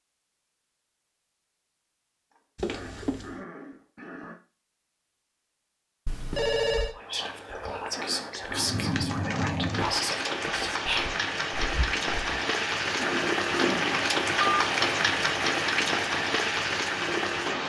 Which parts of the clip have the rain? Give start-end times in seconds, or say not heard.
8.5-17.6.